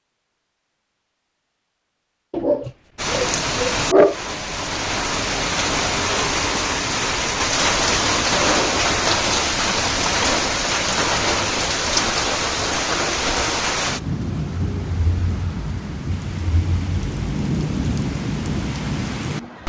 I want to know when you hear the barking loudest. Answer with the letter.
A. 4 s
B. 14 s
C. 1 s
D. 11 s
A.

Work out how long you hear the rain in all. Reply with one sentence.
You can hear the rain for 17 seconds altogether.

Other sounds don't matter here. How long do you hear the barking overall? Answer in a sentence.
You can hear the barking for 2 seconds altogether.